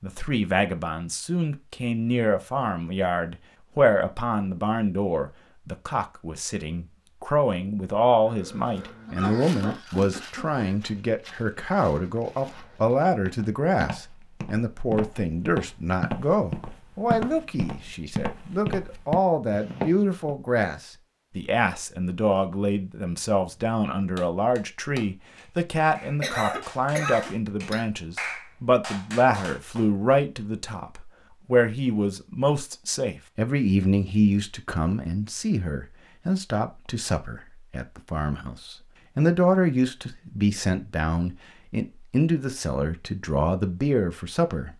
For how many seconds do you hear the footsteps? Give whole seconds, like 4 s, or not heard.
12 s.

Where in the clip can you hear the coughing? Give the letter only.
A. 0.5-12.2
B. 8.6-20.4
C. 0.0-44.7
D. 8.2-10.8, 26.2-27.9
D.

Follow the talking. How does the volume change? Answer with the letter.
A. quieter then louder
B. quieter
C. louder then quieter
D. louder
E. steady
E.